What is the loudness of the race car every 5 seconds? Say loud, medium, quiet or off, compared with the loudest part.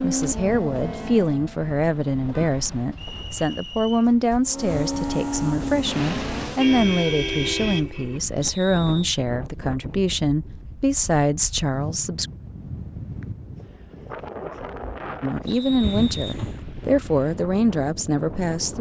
loud, loud, off, off.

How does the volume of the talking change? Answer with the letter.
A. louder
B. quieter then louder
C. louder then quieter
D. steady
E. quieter
D.